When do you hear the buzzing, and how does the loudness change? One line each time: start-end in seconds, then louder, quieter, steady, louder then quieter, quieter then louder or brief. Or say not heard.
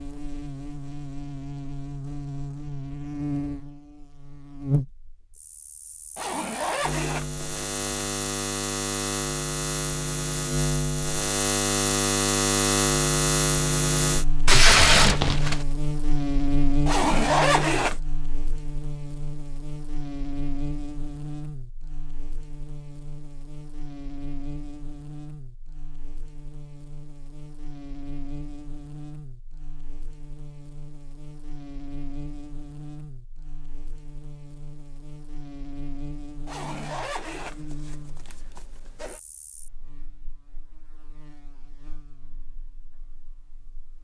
0.0-44.0 louder then quieter.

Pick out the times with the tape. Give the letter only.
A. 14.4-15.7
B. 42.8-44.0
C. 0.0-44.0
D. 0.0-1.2
A.